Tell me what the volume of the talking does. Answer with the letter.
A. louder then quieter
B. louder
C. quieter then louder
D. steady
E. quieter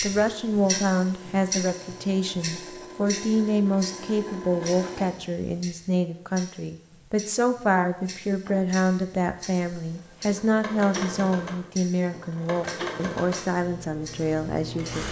D.